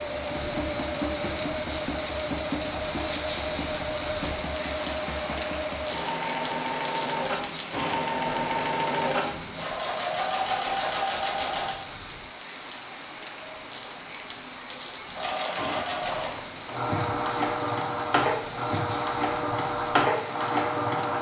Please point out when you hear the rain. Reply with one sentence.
You can hear the rain from 0.0 to 21.1 s.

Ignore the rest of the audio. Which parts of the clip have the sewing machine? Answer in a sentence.
The sewing machine can be heard from 0.0 to 11.8 s and from 15.2 to 21.1 s.